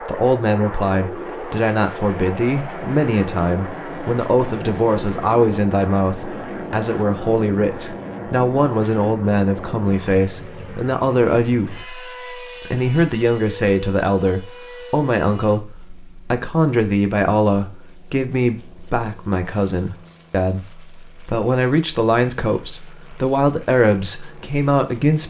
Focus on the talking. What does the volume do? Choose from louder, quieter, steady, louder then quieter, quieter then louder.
steady.